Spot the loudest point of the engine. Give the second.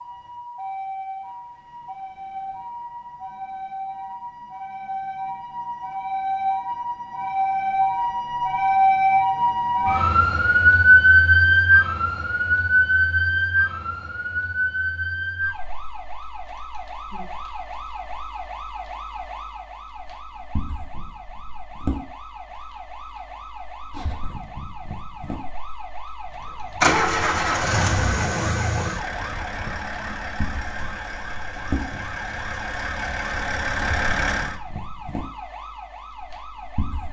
27 s.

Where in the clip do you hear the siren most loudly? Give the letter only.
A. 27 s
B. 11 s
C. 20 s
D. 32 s
B.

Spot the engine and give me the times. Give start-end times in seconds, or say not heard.
26.8-34.6.